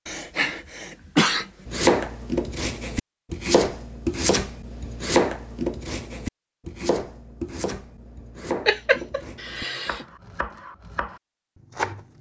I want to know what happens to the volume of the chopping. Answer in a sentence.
The volume of the chopping goes down.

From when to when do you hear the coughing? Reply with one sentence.
You can hear the coughing from 0.1 to 1.6 s and from 8.7 to 10.1 s.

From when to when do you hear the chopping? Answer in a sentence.
You can hear the chopping from 1.6 to 12.1 s.